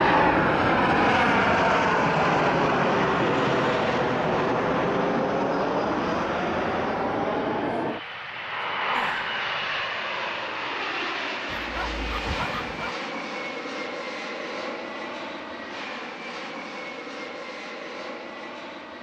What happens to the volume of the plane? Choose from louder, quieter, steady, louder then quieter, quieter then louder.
quieter.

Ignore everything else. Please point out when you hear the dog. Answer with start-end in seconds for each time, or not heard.
11.4-12.9.